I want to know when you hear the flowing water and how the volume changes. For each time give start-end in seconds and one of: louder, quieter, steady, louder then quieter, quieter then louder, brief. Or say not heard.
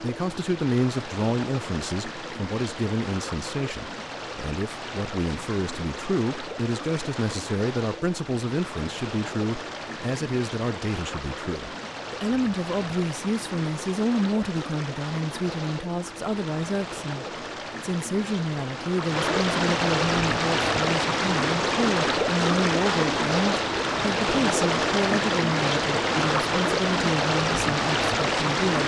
0.0-28.8 louder.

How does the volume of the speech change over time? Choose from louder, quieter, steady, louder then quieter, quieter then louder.
steady.